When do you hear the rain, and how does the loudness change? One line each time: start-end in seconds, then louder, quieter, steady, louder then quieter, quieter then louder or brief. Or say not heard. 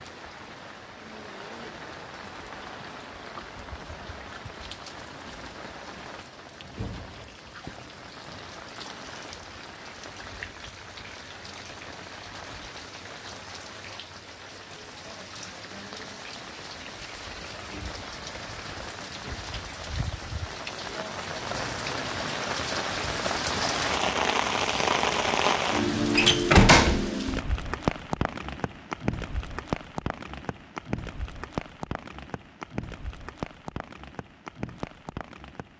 0.0-35.7 louder then quieter.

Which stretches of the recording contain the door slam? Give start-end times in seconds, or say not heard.
26.1-27.1.